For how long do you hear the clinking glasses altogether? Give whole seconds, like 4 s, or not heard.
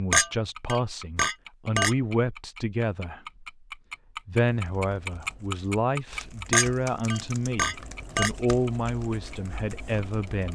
4 s.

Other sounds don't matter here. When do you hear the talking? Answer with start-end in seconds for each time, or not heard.
0.0-3.2, 4.2-10.5.